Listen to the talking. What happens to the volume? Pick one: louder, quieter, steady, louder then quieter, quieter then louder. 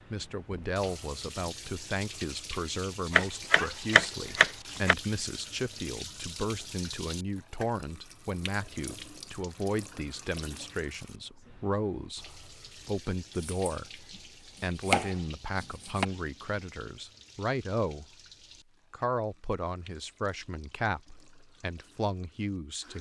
steady.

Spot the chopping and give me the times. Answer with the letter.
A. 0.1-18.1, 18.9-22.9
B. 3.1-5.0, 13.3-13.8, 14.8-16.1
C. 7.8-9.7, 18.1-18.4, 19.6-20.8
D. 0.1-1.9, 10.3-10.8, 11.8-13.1
B.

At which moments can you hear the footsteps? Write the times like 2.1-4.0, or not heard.
not heard.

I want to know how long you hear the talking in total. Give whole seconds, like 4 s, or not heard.
22 s.